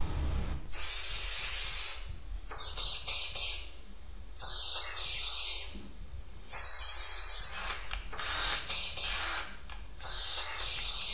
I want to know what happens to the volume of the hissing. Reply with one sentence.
The loudness of the hissing stays about the same.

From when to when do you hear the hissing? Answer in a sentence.
You can hear the hissing from 0.0 to 11.0 s.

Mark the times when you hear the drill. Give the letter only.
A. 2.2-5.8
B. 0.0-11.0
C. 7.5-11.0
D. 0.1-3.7
C.